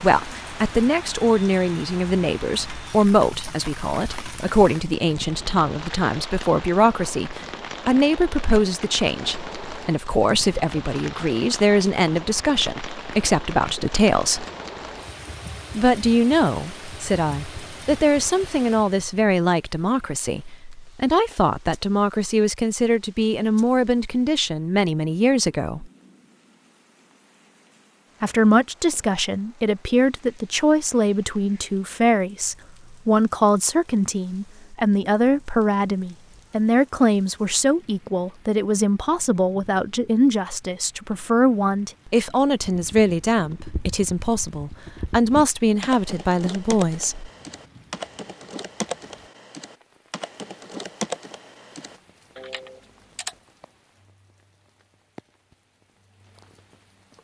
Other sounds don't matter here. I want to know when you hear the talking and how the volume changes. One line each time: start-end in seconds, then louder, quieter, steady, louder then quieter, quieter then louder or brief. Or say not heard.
0.0-14.4 steady
15.8-25.9 steady
28.2-47.3 steady.